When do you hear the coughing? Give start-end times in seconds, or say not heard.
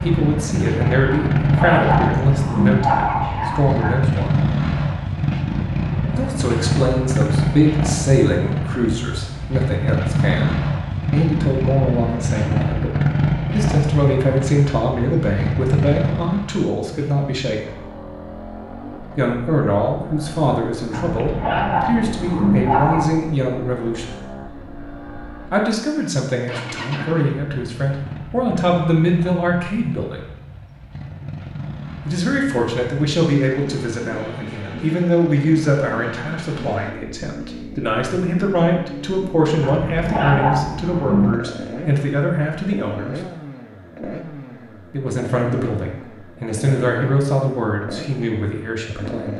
not heard.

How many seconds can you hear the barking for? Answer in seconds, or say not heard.
7 s.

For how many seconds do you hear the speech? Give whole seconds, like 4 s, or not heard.
41 s.